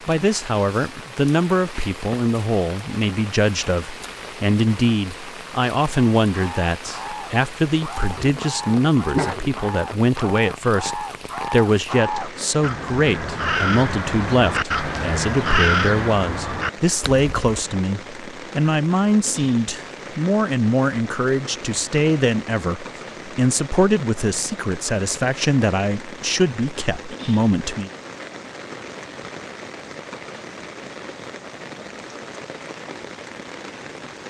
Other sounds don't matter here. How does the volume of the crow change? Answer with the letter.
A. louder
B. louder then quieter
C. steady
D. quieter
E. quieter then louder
A.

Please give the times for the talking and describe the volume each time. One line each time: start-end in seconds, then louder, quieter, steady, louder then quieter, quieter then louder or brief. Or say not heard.
0.1-27.9 steady.